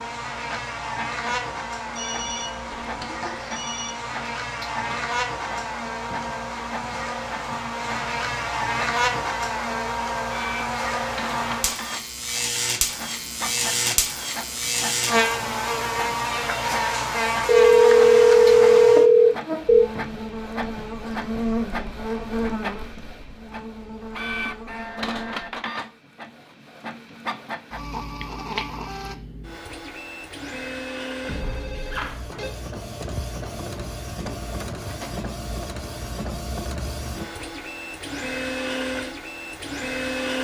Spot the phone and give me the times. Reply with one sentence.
The phone can be heard from 1.9 to 4.0 s, from 17.4 to 19.9 s and from 31.2 to 32.5 s.